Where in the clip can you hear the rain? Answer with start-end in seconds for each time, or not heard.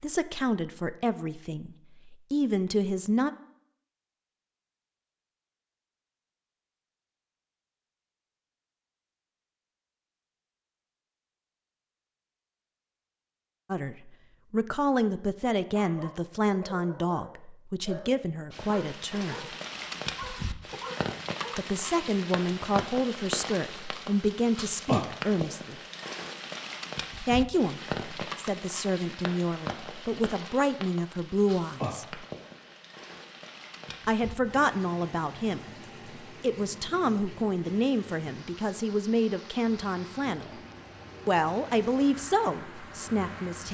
18.5-43.6.